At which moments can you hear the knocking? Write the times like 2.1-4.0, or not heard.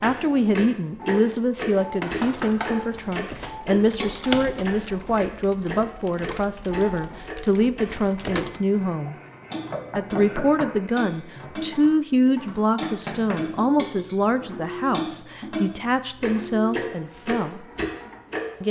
2.0-3.2, 9.5-10.8, 12.8-13.5.